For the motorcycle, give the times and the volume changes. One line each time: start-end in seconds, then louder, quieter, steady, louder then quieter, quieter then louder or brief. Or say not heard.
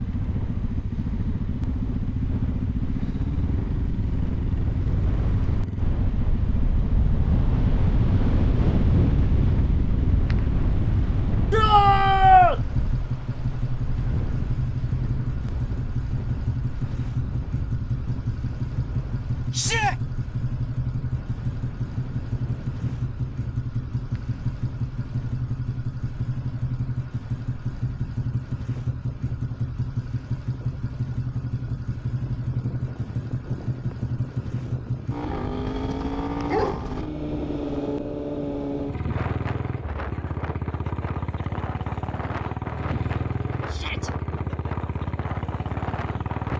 0.0-46.5 steady.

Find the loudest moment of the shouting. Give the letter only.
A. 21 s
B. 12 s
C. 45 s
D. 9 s
B.